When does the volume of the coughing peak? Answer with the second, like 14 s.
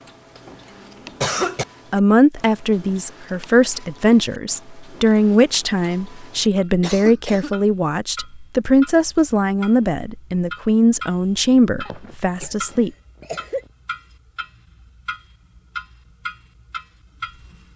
1 s.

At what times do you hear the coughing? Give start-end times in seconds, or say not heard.
0.3-1.6, 6.8-7.5, 11.8-13.7.